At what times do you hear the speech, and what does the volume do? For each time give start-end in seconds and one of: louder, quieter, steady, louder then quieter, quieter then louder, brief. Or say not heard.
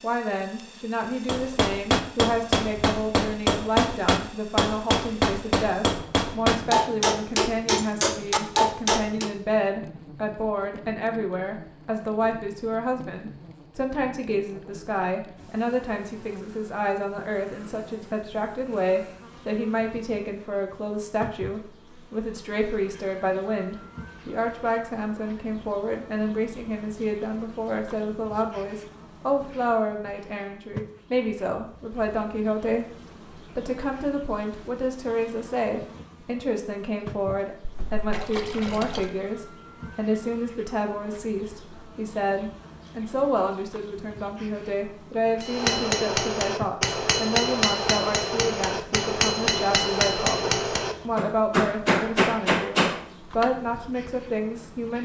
0.0-54.9 steady.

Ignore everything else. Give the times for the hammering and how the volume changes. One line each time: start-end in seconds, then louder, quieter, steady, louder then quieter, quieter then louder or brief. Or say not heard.
1.2-9.3 steady
45.4-53.5 steady.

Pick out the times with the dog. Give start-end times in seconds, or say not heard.
not heard.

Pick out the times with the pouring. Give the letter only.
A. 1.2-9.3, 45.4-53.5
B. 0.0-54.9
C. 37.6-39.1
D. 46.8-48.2
C.